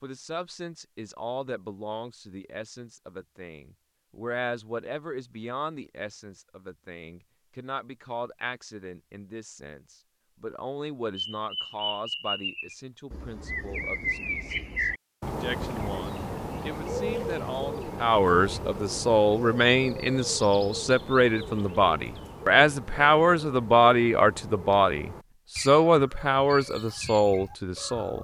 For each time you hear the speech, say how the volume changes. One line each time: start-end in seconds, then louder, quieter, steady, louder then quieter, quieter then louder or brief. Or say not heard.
0.0-28.1 louder.